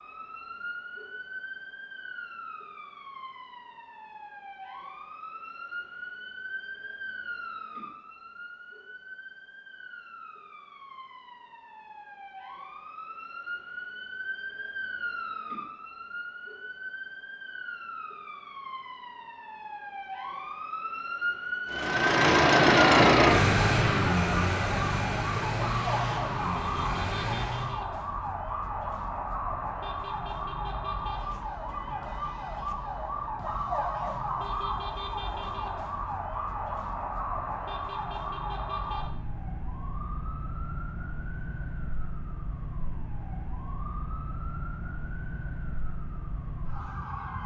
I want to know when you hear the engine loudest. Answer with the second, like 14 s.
23 s.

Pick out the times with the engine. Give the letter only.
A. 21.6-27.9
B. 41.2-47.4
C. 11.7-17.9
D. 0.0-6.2
A.